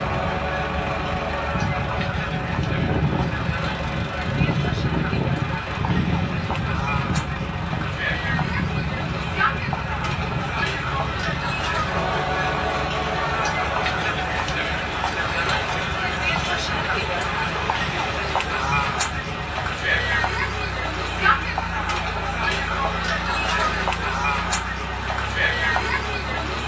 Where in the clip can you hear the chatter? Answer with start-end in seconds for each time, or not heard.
0.0-26.6.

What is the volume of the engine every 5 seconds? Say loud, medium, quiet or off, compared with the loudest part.
loud, loud, medium, medium, medium, medium.